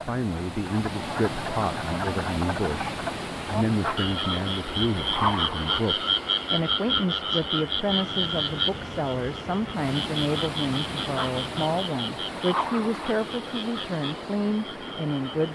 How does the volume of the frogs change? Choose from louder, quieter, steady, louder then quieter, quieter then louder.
louder then quieter.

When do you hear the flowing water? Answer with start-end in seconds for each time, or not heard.
0.0-15.4.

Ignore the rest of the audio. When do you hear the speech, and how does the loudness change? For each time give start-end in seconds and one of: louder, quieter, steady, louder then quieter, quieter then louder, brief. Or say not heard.
0.1-15.4 steady.